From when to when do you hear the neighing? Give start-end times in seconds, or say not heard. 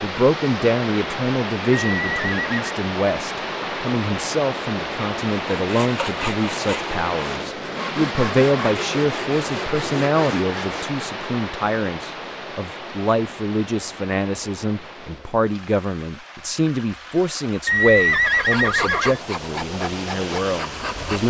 1.9-2.6, 17.6-19.2.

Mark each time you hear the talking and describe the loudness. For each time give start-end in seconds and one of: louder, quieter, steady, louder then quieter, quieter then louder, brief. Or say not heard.
0.0-21.2 steady.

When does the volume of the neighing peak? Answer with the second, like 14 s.
18 s.